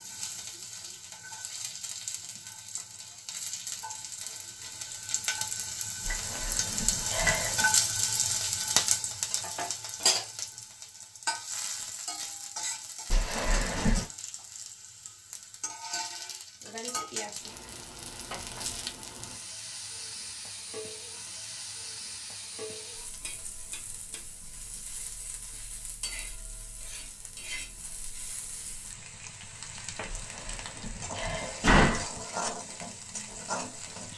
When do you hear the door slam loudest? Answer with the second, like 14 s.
32 s.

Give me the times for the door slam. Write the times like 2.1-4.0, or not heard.
6.0-7.7, 13.1-14.1, 30.1-32.0.